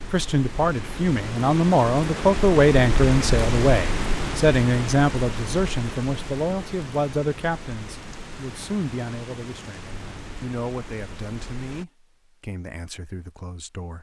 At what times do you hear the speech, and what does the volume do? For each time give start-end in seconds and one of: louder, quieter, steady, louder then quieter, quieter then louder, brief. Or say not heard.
0.0-13.9 quieter.